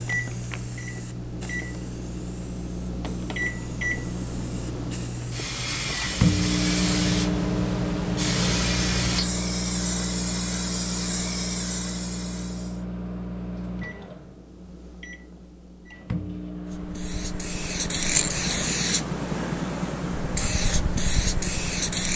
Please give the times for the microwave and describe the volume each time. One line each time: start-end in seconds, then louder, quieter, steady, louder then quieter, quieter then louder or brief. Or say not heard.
0.0-22.1 louder then quieter.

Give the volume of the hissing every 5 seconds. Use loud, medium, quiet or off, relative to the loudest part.
medium, loud, medium, loud, loud.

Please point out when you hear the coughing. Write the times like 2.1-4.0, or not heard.
not heard.